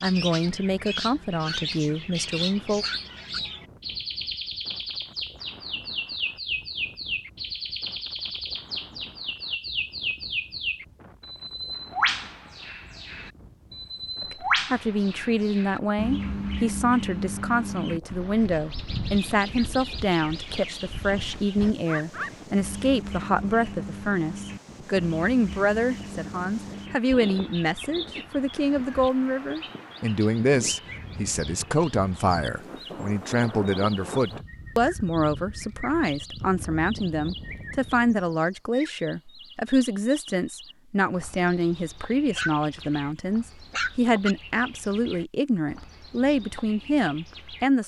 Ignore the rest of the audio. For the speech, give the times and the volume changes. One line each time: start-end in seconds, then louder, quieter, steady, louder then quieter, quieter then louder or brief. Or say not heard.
0.0-2.9 brief
14.3-47.8 steady.